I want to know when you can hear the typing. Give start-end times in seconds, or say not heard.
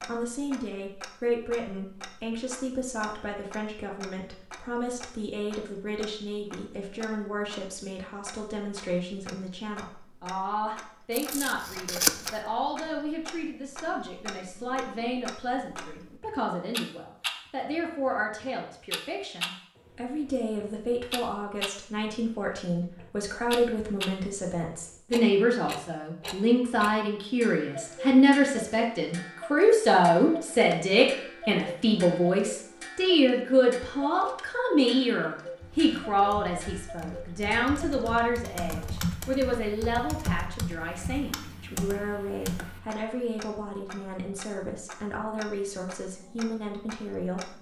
35.6-42.9.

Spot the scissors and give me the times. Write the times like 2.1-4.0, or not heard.
11.1-12.3.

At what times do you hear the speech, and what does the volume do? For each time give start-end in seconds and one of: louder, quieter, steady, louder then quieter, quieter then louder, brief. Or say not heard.
0.1-47.5 louder then quieter.